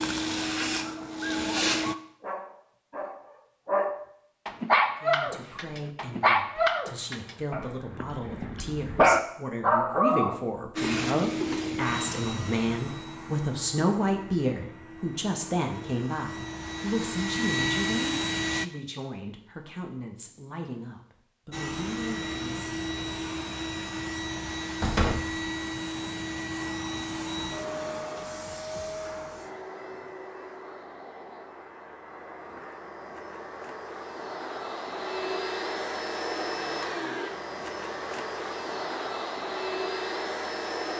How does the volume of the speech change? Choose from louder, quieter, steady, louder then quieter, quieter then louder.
louder then quieter.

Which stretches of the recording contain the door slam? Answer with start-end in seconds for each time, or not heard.
24.8-25.3.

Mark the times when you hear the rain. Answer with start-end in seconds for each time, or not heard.
not heard.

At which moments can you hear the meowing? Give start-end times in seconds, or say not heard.
not heard.